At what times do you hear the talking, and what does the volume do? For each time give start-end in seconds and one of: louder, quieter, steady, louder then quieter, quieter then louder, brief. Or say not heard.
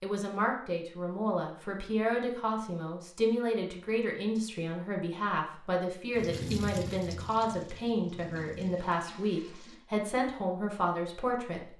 0.0-11.6 steady.